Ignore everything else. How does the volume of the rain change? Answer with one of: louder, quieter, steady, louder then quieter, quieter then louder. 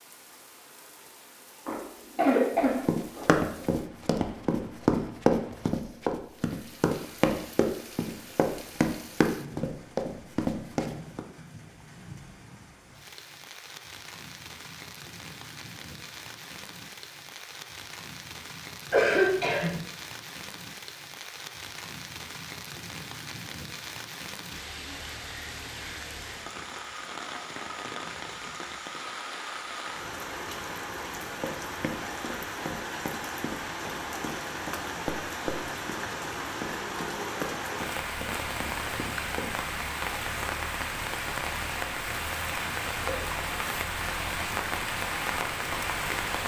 louder.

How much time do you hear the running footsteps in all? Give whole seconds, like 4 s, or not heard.
16 s.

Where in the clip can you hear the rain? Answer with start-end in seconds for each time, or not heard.
0.0-46.4.